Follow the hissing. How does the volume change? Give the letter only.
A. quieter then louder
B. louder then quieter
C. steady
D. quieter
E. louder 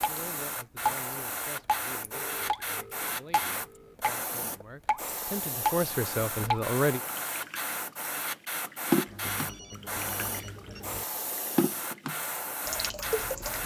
C.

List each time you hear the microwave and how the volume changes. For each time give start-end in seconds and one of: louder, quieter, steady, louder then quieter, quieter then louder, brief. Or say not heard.
not heard.